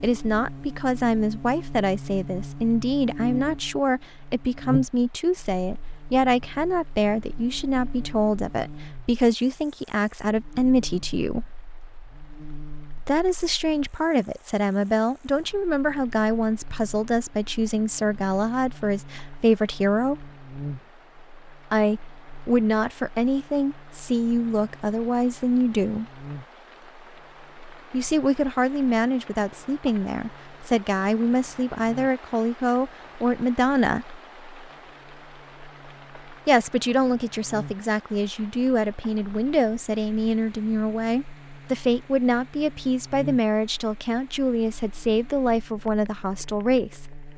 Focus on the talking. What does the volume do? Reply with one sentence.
The loudness of the talking stays about the same.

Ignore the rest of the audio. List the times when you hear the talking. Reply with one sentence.
The talking can be heard from 0.0 to 11.5 s, from 12.9 to 20.2 s, from 21.7 to 26.1 s, from 27.9 to 34.1 s and from 36.5 to 47.0 s.